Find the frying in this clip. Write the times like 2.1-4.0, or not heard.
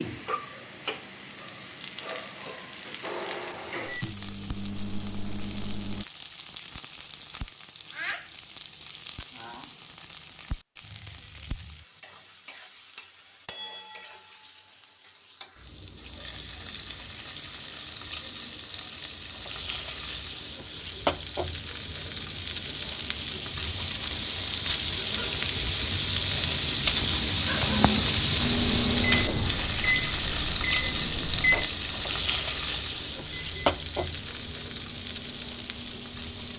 0.0-36.5.